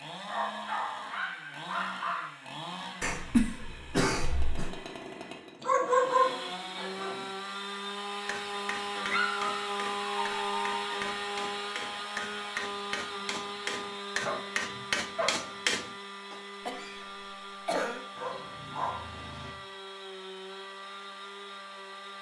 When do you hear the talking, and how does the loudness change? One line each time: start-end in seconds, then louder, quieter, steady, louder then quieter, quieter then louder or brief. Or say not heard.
not heard.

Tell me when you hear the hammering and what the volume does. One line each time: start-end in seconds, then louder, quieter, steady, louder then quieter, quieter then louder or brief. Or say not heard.
8.2-16.4 louder.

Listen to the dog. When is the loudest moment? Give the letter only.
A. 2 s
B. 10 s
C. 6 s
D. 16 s
C.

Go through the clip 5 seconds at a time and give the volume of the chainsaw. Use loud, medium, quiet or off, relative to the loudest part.
medium, loud, loud, medium, medium.